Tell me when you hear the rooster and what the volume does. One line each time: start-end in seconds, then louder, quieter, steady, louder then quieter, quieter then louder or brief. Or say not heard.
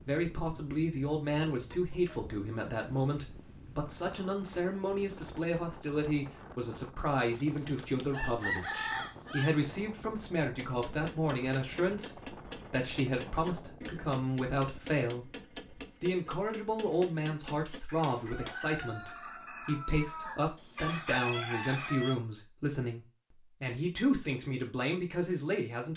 7.3-9.5 brief
17.9-22.1 louder.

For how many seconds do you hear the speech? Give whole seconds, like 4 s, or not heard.
25 s.